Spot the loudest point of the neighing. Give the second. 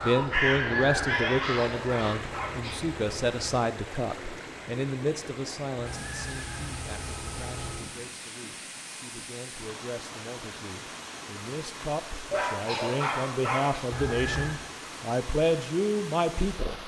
14 s.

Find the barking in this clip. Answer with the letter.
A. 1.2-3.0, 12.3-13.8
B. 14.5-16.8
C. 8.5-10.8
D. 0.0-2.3
A.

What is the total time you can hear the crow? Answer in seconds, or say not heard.
2 s.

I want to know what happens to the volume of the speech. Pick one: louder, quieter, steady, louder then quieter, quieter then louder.
quieter then louder.